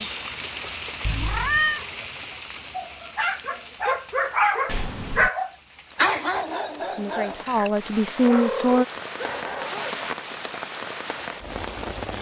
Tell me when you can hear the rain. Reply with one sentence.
The rain can be heard from 0.0 to 12.1 s.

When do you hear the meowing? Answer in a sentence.
You can hear the meowing from 1.1 to 1.9 s, from 4.7 to 5.3 s and from 8.2 to 9.8 s.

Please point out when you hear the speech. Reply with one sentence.
The speech can be heard from 7.0 to 8.8 s.